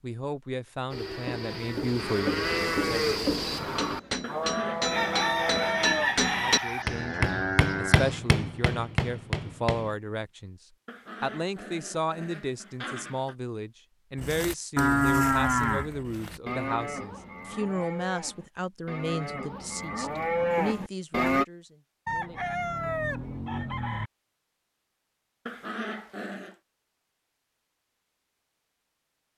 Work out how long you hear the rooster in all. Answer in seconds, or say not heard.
4 s.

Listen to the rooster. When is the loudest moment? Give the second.
6 s.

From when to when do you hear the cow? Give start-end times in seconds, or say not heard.
0.9-8.2, 14.2-21.4.